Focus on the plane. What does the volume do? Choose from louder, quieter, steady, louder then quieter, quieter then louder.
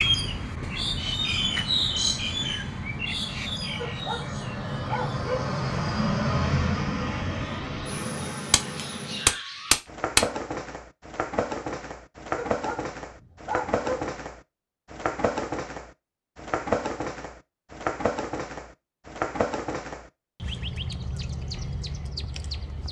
louder then quieter.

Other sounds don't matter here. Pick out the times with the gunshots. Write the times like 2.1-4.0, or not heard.
8.5-10.2.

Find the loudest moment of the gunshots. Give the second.
10 s.